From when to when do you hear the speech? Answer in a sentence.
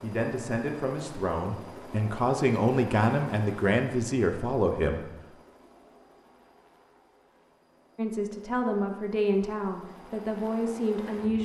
You can hear the speech from 0.0 to 5.1 s and from 8.0 to 11.4 s.